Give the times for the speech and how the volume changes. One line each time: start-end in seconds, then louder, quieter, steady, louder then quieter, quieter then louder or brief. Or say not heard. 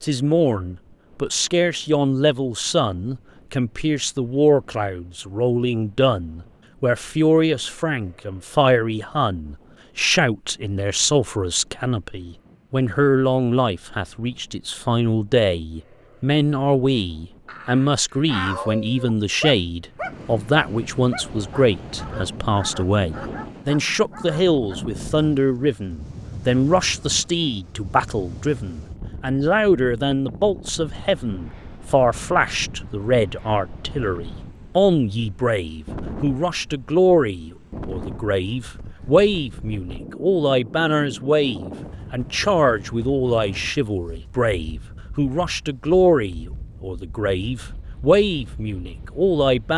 0.0-49.7 steady.